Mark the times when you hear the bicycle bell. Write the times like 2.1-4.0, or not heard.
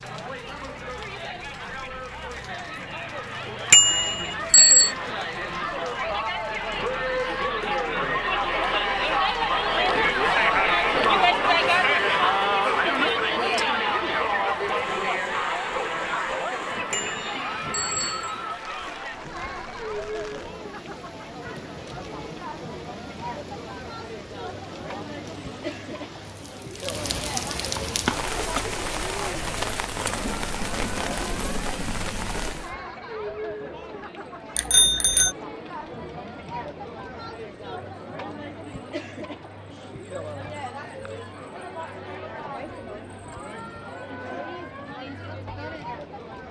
3.7-4.9, 16.9-18.4, 34.5-35.3.